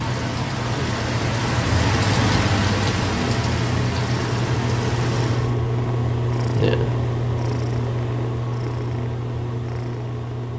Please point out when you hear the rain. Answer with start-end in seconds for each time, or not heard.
0.0-5.5.